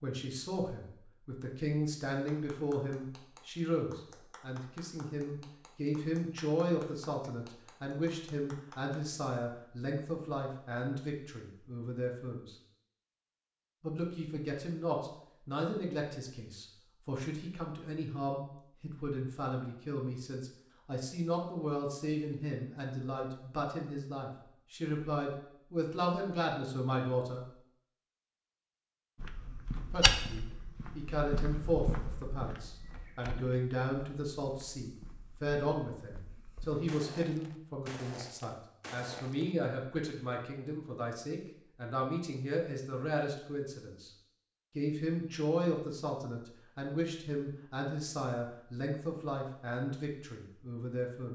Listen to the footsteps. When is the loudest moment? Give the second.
30 s.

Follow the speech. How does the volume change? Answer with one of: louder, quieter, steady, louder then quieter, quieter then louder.
steady.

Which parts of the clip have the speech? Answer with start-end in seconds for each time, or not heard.
0.0-12.6, 13.8-27.4, 29.9-44.1, 44.8-51.2.